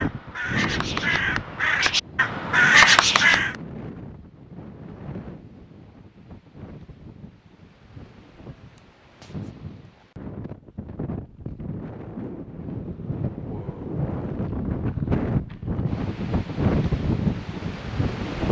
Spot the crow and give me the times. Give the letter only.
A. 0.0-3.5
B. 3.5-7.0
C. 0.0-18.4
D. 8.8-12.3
A.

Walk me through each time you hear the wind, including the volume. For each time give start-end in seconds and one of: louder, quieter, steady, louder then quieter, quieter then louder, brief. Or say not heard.
0.0-18.4 quieter then louder.